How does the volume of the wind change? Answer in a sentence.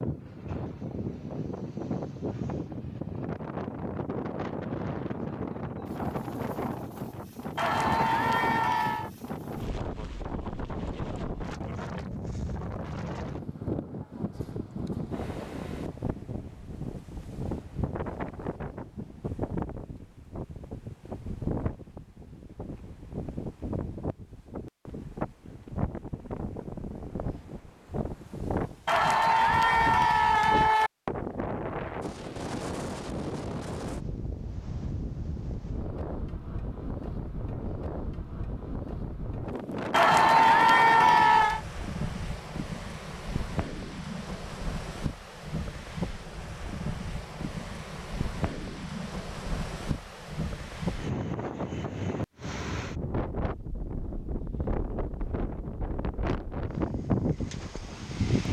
The loudness of the wind stays about the same.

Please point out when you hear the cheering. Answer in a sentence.
You can hear the cheering from 7.5 to 9.1 s, from 28.9 to 30.9 s and from 39.9 to 41.6 s.